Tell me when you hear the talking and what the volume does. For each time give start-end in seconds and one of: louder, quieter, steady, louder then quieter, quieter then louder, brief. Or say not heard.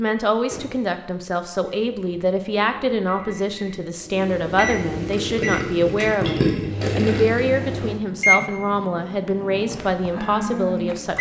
0.0-11.1 steady.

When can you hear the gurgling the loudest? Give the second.
6 s.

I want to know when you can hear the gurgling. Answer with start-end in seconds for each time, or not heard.
5.0-7.6.